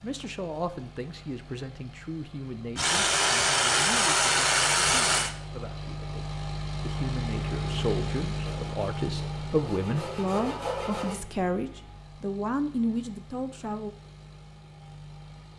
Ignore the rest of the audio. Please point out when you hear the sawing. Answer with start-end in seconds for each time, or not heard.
2.8-5.3, 8.4-11.2.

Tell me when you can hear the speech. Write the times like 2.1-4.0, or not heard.
0.0-13.9.